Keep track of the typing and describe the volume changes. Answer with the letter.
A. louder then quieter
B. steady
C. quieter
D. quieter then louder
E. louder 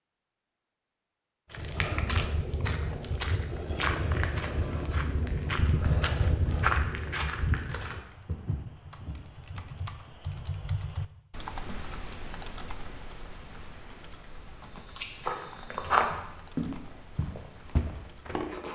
A.